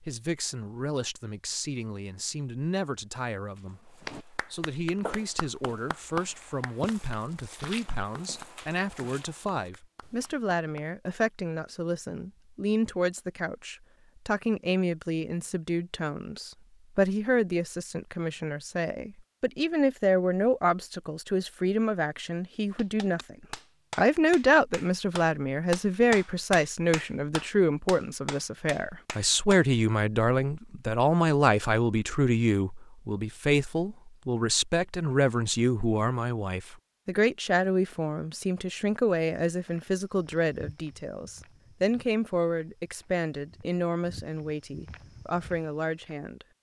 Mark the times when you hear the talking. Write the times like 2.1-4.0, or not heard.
0.0-23.4, 23.9-46.5.